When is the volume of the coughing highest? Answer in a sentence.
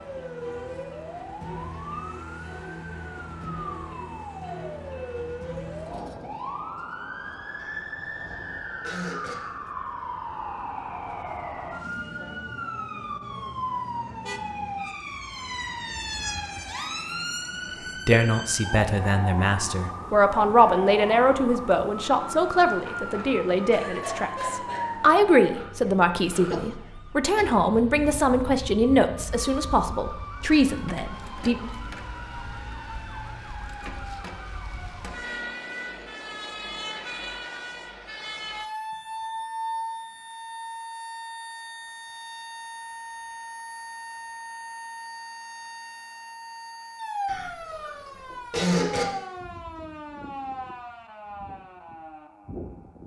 The volume of the coughing peaks at 49 seconds.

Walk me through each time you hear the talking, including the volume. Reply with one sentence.
The talking can be heard from 18.1 to 31.7 s, at a steady volume.